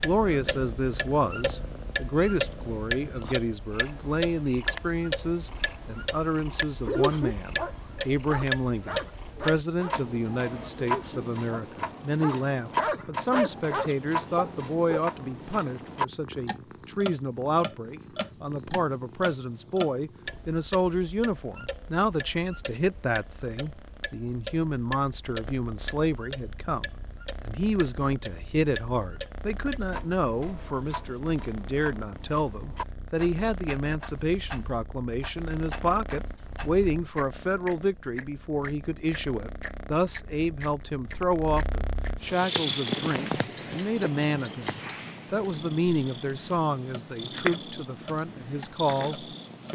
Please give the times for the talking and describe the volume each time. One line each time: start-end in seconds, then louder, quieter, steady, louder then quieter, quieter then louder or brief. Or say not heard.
0.0-26.9 steady
27.4-49.7 steady.